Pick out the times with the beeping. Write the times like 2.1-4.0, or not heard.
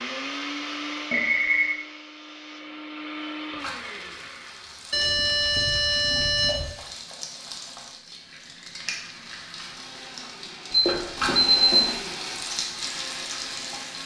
1.1-1.8, 4.9-6.7, 10.7-11.9.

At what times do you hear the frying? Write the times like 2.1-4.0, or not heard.
3.5-14.0.